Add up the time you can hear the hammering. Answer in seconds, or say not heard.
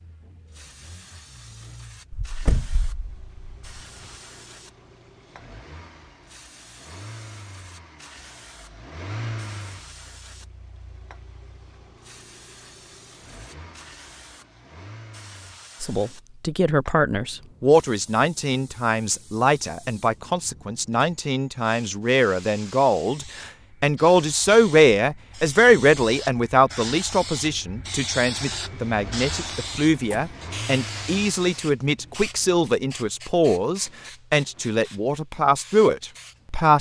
not heard.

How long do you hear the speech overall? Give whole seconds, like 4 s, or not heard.
21 s.